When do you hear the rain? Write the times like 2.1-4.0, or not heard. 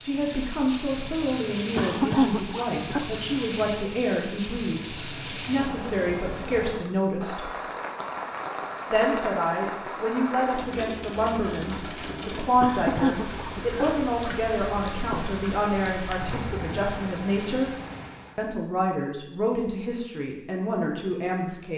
0.0-18.4.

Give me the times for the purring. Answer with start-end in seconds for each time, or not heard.
not heard.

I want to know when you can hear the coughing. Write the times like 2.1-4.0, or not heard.
1.8-3.4, 12.6-14.4.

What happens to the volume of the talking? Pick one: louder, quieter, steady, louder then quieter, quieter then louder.
steady.